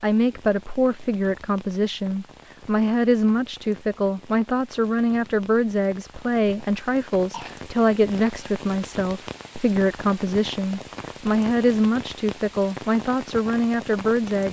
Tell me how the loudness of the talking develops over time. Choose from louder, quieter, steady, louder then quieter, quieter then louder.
steady.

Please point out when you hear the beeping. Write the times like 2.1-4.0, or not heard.
not heard.